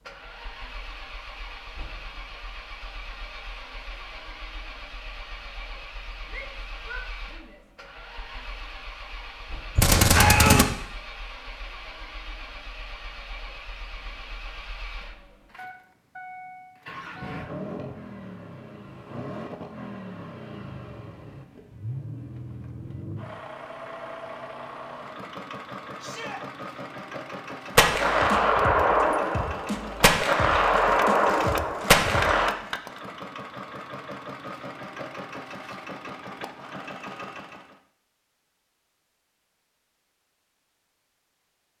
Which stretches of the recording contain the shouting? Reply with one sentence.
The shouting can be heard from 6.2 to 7.6 s and from 26.0 to 26.4 s.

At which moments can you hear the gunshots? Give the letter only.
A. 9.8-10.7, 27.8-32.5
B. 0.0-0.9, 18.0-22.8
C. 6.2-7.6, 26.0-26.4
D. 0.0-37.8
A.